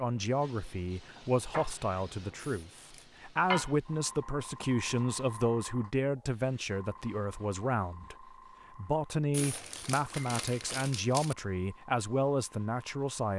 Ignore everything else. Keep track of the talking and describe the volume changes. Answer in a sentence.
The volume of the talking stays about the same.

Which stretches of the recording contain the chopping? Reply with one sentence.
The chopping can't be heard in this clip.